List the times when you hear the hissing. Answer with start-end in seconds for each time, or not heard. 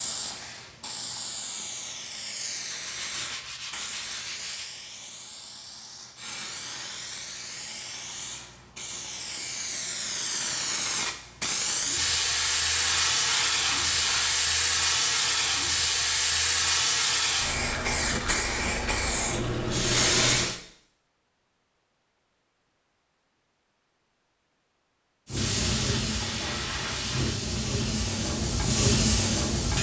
0.0-20.6, 25.2-29.7.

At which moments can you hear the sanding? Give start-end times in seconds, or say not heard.
2.7-4.7, 12.3-14.4, 25.4-27.4.